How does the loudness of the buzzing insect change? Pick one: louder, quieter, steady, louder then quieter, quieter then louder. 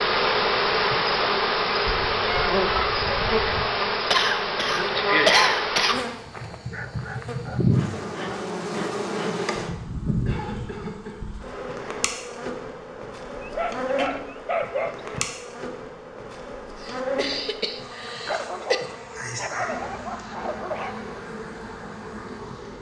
quieter.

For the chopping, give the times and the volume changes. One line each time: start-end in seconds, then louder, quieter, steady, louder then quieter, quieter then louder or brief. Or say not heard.
not heard.